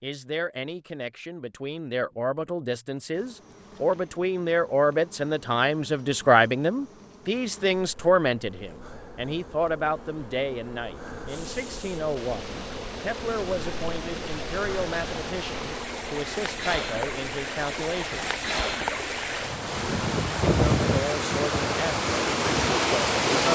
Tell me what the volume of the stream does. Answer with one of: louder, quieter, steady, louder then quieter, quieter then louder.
louder.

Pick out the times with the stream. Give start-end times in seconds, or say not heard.
11.2-23.5.